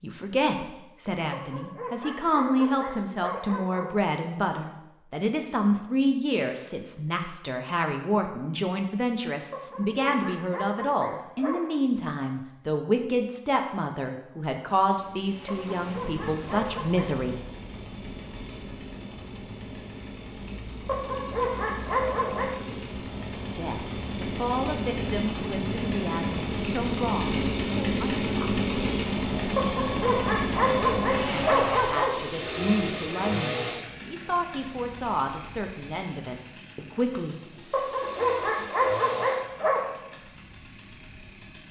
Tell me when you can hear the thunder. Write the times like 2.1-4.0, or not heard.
not heard.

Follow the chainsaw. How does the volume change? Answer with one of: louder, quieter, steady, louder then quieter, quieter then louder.
louder then quieter.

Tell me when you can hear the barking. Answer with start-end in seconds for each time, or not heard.
1.3-3.9, 9.5-11.8, 15.4-17.1, 20.9-22.5, 29.6-32.1, 37.7-39.8.